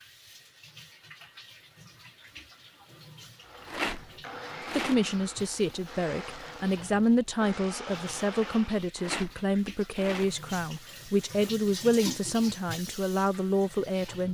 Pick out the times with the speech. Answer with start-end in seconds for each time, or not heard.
4.7-14.2.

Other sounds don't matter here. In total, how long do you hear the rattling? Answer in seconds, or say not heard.
4 s.